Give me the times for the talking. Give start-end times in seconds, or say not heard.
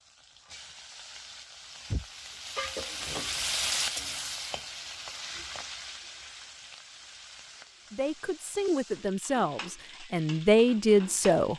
7.9-11.5.